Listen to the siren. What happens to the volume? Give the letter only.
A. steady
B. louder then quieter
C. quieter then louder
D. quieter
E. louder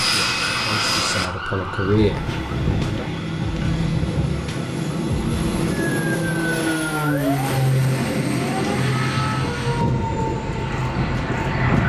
A.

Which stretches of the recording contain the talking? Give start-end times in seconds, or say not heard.
0.0-3.1.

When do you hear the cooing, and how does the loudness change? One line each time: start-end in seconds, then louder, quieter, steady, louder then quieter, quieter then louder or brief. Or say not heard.
not heard.